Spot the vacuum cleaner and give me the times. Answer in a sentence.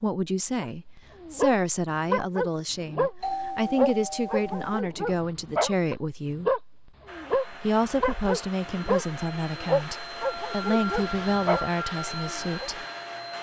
The vacuum cleaner can be heard from 7.0 to 13.3 s.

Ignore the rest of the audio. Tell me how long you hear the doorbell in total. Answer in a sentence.
The doorbell can be heard for 2 seconds in total.